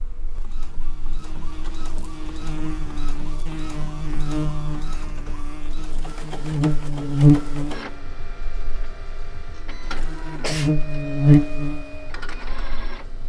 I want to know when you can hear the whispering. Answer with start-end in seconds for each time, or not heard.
not heard.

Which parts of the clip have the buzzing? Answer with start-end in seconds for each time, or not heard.
0.0-13.2.